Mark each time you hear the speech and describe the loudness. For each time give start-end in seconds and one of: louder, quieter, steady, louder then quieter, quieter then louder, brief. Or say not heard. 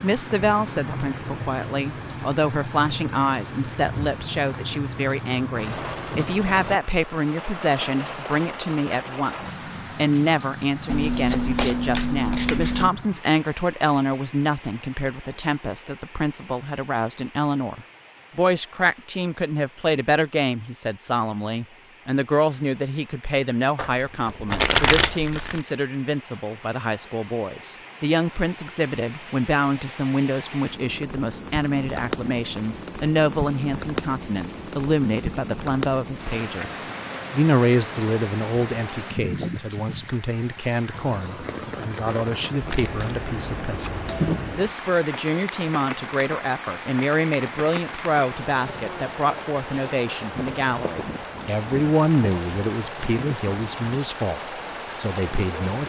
0.0-55.8 steady.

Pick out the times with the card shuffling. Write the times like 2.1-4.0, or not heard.
10.8-12.9, 23.8-25.6, 42.6-44.6.